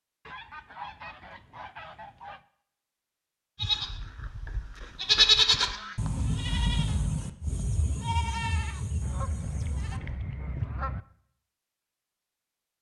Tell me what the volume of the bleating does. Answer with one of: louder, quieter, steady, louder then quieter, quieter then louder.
louder then quieter.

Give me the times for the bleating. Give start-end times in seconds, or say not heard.
3.5-10.1.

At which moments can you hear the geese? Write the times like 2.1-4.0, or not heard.
0.2-2.5, 4.9-6.2, 9.0-11.0.